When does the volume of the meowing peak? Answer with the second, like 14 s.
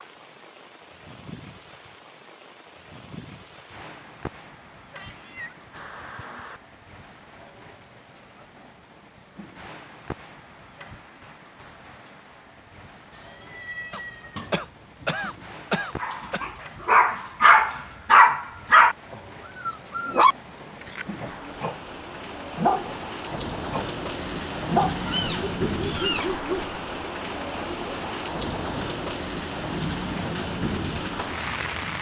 25 s.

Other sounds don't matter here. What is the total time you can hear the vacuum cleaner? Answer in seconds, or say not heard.
not heard.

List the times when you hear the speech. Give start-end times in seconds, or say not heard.
not heard.